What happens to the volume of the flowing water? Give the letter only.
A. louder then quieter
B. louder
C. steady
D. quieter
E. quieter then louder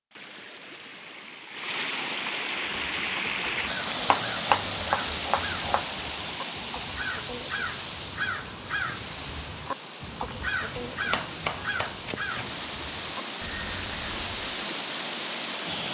E.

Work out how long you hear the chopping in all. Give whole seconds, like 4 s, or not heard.
4 s.